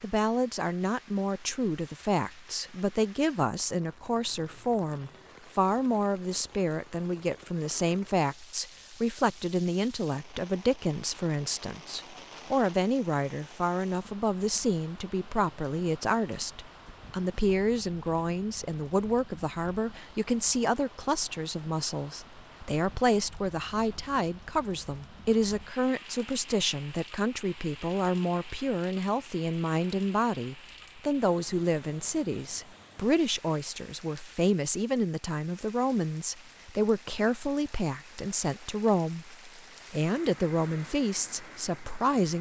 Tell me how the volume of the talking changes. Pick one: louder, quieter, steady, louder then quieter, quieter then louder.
steady.